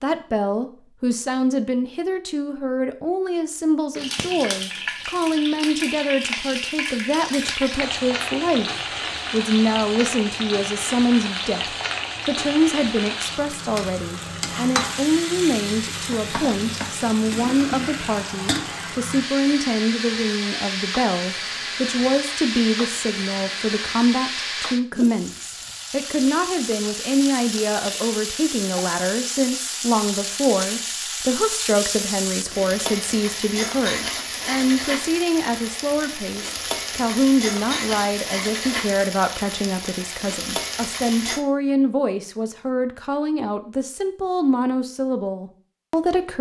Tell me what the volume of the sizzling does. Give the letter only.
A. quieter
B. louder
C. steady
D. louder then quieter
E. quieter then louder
C.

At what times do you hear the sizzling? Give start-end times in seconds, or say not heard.
3.9-41.5.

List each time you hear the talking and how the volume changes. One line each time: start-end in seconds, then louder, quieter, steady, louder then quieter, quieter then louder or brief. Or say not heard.
0.0-46.3 steady.